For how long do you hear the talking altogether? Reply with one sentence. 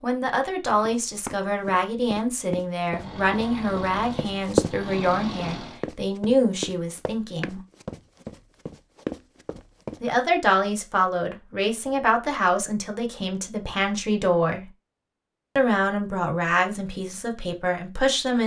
The talking can be heard for 15 seconds in total.